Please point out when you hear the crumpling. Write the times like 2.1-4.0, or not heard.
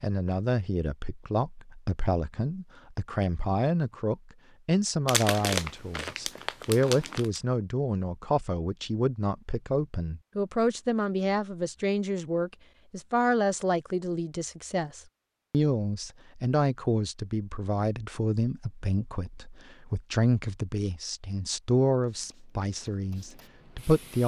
5.0-7.4.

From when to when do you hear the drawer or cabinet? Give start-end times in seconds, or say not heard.
not heard.